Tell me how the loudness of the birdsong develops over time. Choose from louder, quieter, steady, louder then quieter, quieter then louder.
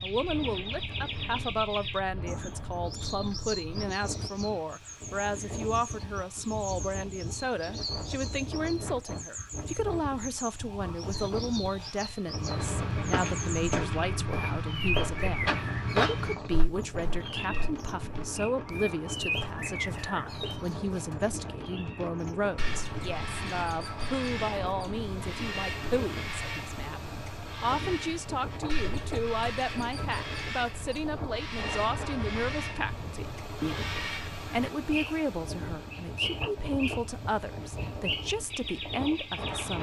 steady.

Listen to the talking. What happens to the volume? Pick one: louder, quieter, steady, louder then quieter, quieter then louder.
steady.